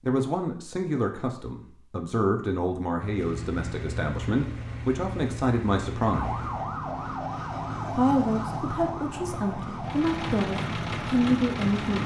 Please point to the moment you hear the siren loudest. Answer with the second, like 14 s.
8 s.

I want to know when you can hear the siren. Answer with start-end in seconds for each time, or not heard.
6.1-12.0.